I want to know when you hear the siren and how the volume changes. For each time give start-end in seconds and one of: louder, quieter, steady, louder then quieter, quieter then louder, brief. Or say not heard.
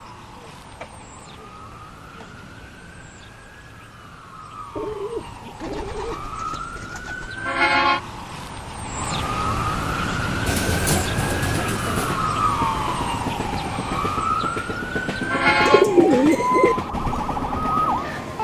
0.0-18.3 louder.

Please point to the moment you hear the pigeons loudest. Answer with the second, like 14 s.
16 s.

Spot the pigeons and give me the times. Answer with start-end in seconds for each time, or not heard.
0.3-2.5, 4.8-7.3, 10.4-12.2, 15.7-16.8.